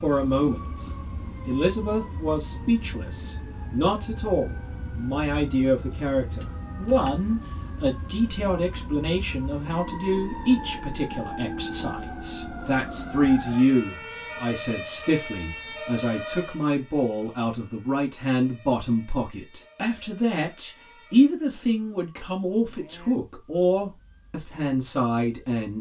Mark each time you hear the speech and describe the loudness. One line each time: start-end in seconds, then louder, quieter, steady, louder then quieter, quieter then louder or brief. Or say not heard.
0.0-25.7 steady.